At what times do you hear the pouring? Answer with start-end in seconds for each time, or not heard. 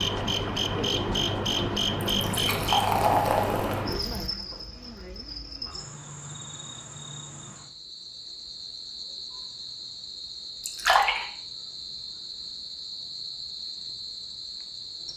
2.1-3.9, 10.7-11.2.